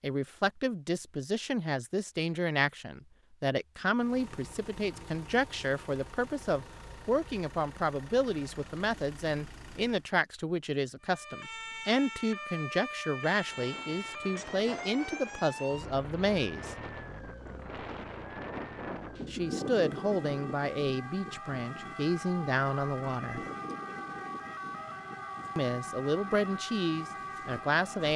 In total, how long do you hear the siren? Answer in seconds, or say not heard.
17 s.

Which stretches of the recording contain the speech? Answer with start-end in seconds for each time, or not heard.
0.0-16.8, 19.3-23.4, 25.6-28.1.